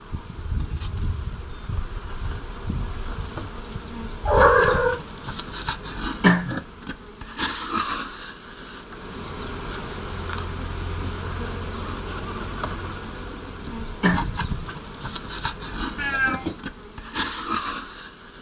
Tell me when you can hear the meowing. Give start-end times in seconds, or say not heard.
4.2-5.0, 15.9-16.6.